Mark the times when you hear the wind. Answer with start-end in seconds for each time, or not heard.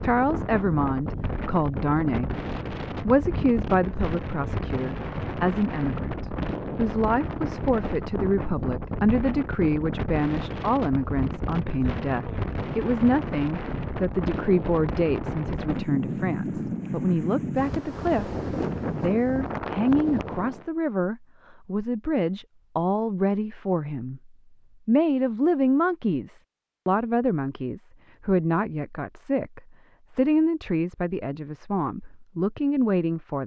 0.0-20.6.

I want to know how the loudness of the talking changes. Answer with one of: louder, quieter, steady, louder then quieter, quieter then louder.
steady.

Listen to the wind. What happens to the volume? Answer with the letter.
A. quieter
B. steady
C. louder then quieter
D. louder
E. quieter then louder
B.